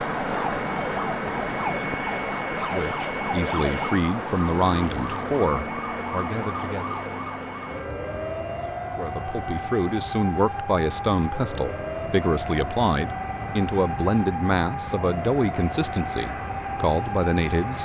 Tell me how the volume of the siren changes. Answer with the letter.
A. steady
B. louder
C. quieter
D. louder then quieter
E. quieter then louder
A.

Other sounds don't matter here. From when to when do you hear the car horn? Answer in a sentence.
You can't hear the car horn here.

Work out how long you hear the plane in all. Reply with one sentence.
The plane can be heard for 18 seconds in total.